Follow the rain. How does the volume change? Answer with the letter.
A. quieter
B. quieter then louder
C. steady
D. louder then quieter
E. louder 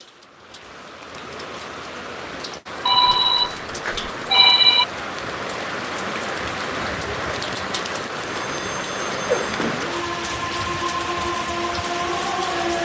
E.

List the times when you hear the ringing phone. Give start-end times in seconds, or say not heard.
2.9-4.8, 8.3-9.8.